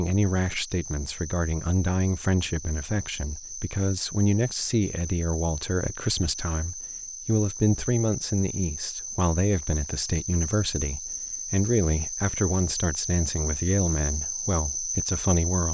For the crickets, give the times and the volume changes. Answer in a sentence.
You can hear the crickets from 0.0 to 15.6 s, getting louder.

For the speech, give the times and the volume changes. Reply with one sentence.
The speech can be heard from 0.0 to 15.6 s, at a steady volume.